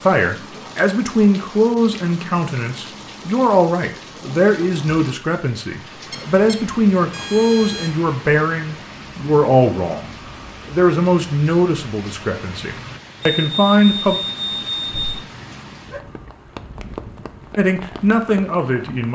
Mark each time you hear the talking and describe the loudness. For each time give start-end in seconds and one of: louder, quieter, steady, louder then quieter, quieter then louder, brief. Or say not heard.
0.0-14.2 steady
17.6-19.0 brief.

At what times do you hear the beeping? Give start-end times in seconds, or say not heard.
6.1-8.0, 13.2-15.2.